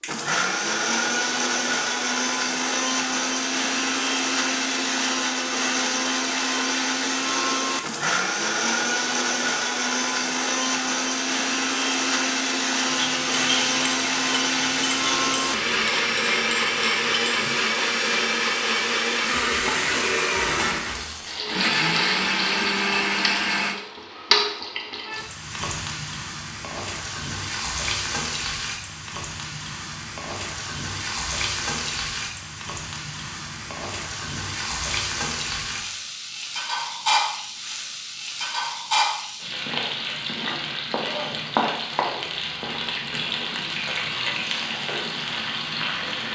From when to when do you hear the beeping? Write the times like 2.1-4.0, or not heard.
not heard.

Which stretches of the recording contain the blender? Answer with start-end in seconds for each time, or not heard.
0.0-23.8.